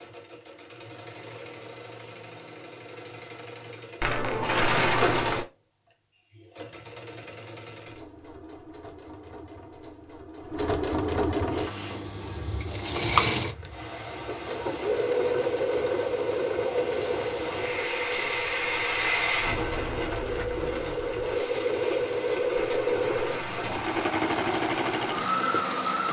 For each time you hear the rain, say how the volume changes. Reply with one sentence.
You can hear the rain from 11.5 to 26.0 s, getting louder then quieter.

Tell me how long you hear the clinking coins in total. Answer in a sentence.
The clinking coins can be heard for 3 seconds in total.